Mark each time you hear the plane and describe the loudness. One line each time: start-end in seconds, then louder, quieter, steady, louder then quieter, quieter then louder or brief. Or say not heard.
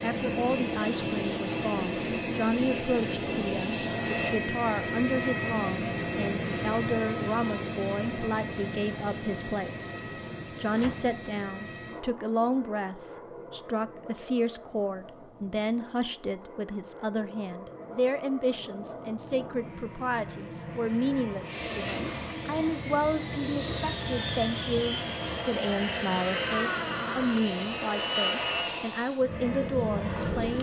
0.0-30.5 quieter then louder.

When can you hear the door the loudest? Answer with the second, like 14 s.
27 s.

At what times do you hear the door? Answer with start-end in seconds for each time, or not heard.
10.7-11.2, 26.3-27.4.